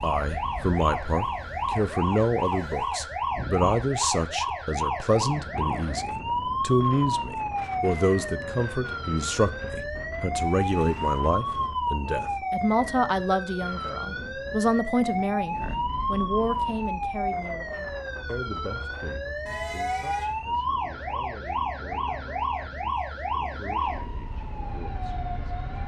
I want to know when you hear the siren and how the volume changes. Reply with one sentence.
The siren can be heard from 0.0 to 25.8 s, at a steady volume.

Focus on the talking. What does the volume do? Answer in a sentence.
The volume of the talking goes down.